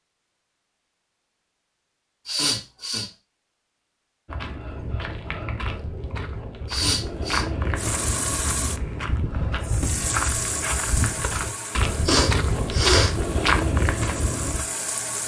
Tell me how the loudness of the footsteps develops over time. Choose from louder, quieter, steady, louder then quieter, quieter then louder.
louder.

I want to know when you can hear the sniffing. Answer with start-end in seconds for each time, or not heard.
2.2-3.0, 6.7-7.5, 12.1-13.1.